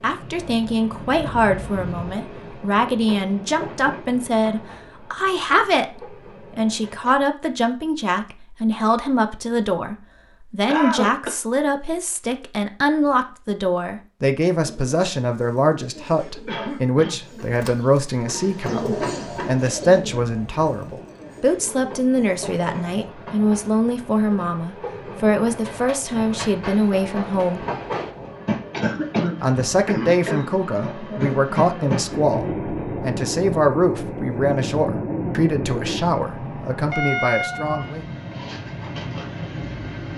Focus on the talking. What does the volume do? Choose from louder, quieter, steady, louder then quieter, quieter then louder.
steady.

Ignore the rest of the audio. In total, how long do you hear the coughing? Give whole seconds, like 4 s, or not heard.
3 s.